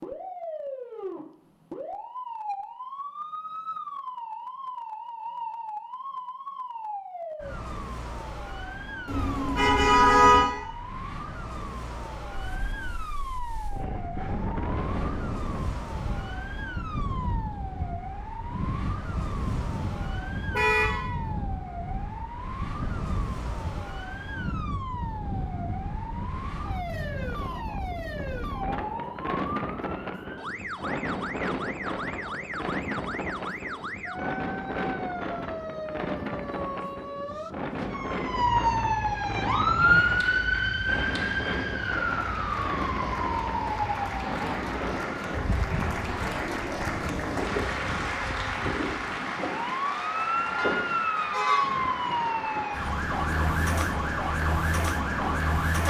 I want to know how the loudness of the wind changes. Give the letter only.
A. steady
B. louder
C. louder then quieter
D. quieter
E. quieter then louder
A.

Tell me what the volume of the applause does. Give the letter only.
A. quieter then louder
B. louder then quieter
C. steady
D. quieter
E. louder
B.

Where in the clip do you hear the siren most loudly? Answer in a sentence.
The volume of the siren peaks at 40 seconds.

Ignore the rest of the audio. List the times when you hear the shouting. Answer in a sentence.
The shouting can't be heard in this clip.